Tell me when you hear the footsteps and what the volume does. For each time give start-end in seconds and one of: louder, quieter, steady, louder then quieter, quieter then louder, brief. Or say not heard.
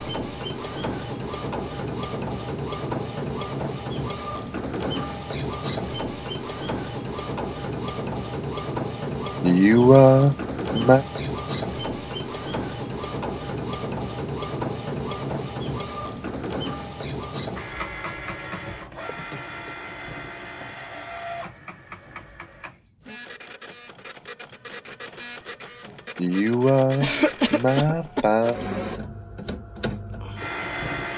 not heard.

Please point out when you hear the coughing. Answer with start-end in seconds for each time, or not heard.
27.0-28.3.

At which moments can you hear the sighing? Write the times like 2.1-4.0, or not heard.
9.4-11.1, 26.1-28.6.